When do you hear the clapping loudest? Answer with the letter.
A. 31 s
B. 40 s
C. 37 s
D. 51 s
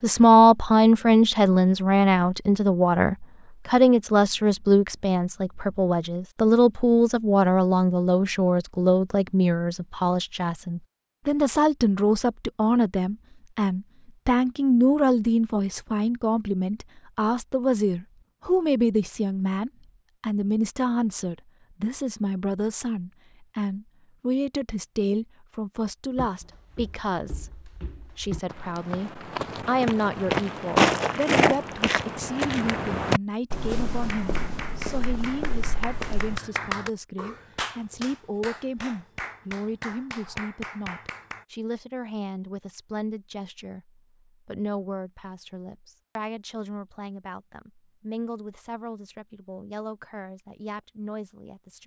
C.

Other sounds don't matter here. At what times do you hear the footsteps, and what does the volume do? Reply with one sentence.
You can hear the footsteps from 26.1 to 36.4 s, getting louder then quieter.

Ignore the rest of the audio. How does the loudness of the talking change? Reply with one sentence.
The volume of the talking goes down.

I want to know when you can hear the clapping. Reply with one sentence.
The clapping can be heard from 33.9 to 41.5 s.